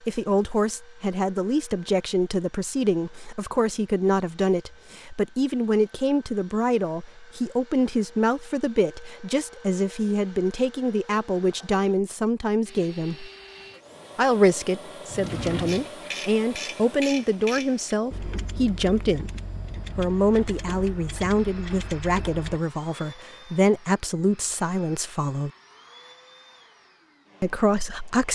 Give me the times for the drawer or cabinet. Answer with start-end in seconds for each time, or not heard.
15.1-15.9.